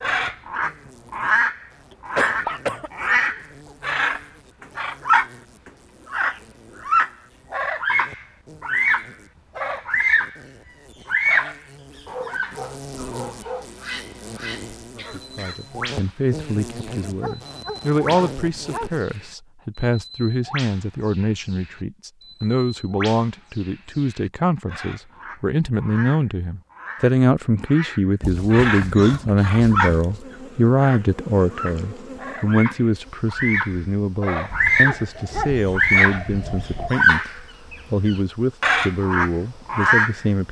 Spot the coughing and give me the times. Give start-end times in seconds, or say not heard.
1.9-2.9, 14.9-15.7, 28.9-30.4.